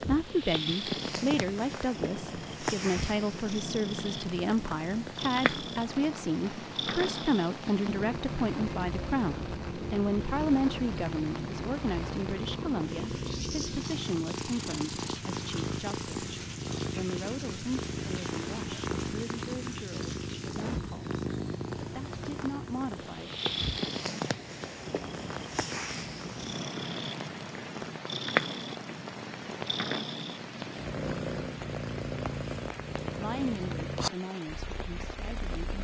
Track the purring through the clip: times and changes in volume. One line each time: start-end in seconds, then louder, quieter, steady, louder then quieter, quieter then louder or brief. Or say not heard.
0.0-35.7 steady.